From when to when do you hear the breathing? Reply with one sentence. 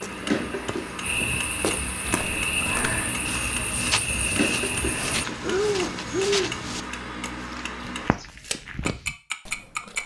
The breathing can be heard from 5.4 to 6.5 s.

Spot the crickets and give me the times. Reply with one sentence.
The crickets can be heard from 0.0 to 5.2 s.